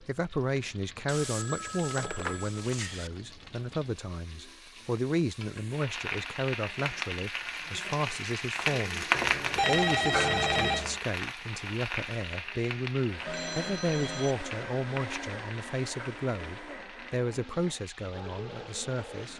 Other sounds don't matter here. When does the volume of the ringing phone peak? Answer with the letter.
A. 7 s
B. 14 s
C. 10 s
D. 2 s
C.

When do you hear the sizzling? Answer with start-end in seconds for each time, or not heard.
0.0-19.3.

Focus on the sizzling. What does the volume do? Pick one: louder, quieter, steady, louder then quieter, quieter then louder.
louder then quieter.